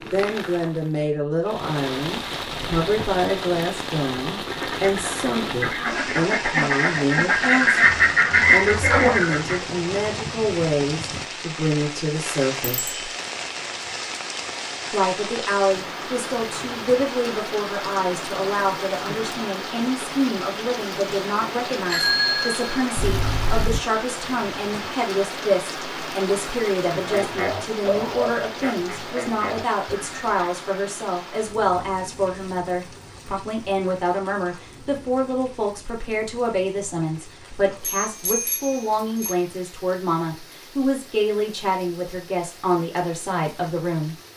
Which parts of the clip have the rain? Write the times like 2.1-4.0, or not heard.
0.0-44.3.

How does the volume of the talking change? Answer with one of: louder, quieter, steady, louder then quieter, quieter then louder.
steady.